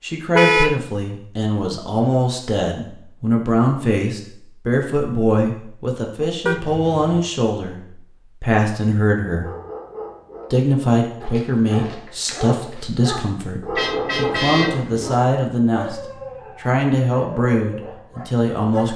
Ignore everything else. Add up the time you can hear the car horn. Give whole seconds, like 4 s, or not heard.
3 s.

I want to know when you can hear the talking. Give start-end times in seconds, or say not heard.
0.0-7.8, 8.4-9.5, 10.5-18.9.